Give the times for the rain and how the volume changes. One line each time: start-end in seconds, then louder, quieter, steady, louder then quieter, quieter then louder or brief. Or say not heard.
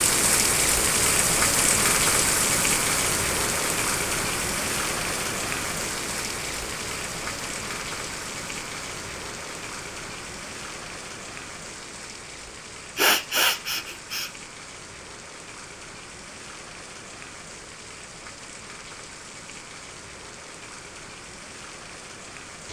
0.0-22.6 quieter.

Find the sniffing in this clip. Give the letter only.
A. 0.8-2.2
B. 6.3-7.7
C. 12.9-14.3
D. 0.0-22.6
C.